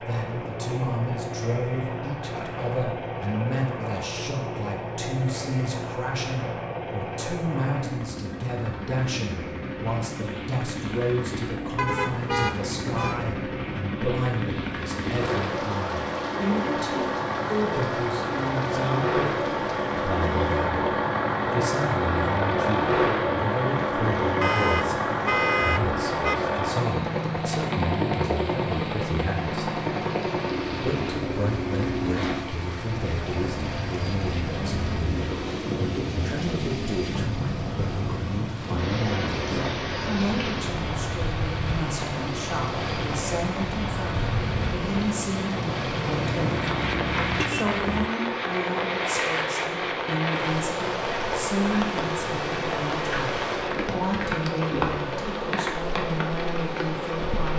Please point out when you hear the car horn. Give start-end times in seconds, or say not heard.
11.8-13.2, 24.4-26.4, 46.0-48.1.